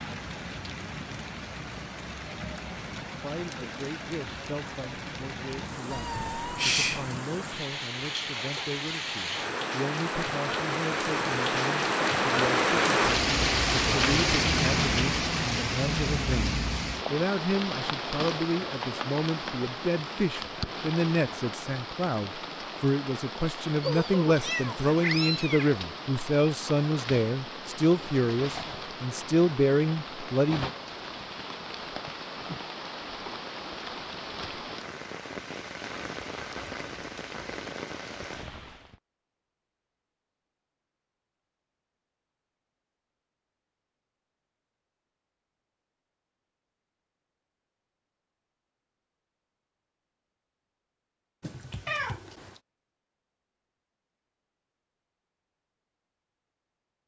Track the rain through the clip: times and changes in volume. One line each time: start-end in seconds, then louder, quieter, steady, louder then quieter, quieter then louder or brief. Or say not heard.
0.0-39.0 louder then quieter.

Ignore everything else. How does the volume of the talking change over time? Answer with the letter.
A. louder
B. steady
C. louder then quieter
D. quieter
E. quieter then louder
A.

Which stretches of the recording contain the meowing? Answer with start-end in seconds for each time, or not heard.
5.9-7.0, 23.8-25.7, 51.4-52.6.